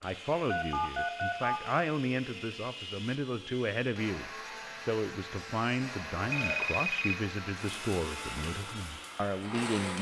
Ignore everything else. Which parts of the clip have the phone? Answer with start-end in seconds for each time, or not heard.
0.5-1.6, 5.5-7.2.